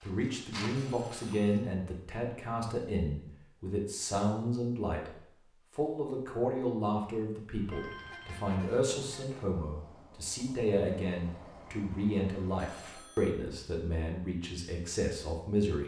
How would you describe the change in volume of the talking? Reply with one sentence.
The volume of the talking stays about the same.